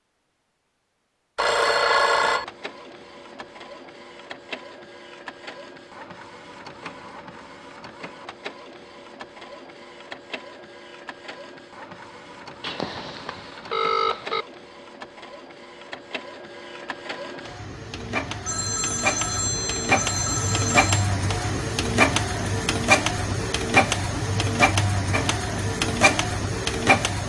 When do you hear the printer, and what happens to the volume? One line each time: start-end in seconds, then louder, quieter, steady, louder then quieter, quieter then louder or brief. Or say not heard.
2.2-27.2 louder.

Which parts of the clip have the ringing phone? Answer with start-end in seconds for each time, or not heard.
1.4-2.5, 12.6-14.4, 18.4-21.1.